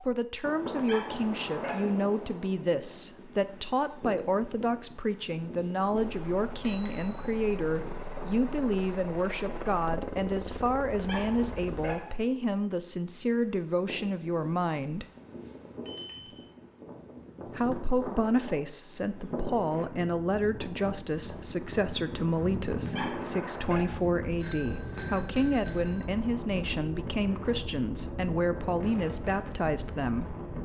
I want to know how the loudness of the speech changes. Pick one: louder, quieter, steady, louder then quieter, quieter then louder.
steady.